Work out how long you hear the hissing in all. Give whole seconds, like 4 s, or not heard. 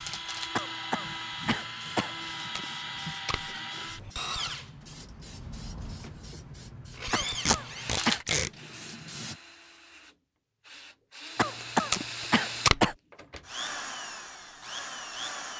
9 s.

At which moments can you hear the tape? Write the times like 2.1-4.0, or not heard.
2.4-3.5, 7.5-8.5, 11.6-12.8.